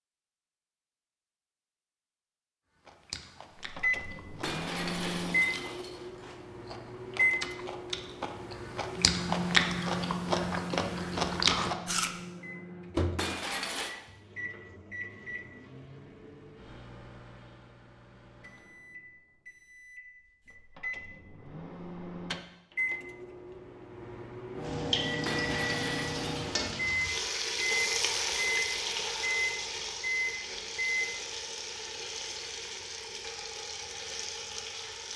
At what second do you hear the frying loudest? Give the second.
28 s.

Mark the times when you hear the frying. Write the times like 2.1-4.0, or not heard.
24.6-35.1.